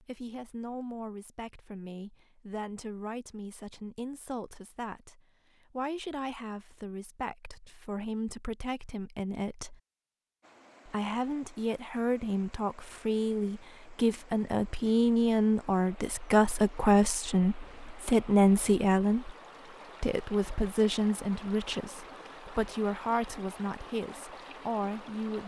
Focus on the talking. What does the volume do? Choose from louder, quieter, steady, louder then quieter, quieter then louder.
louder then quieter.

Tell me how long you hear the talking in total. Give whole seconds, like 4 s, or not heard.
24 s.